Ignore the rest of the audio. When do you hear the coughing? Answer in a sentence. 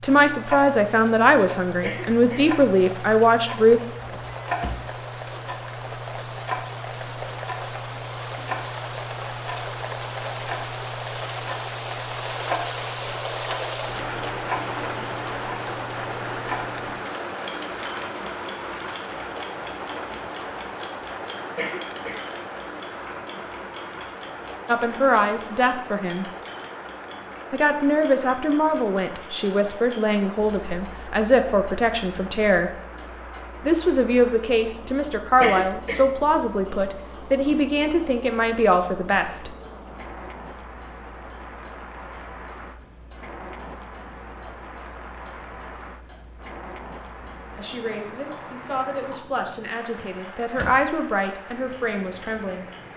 You can hear the coughing from 1.8 to 2.5 s, from 21.6 to 22.2 s and from 35.4 to 36.0 s.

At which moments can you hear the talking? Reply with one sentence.
You can hear the talking from 0.0 to 3.8 s, from 24.6 to 26.2 s, from 27.5 to 32.7 s, from 33.6 to 39.5 s and from 47.5 to 52.6 s.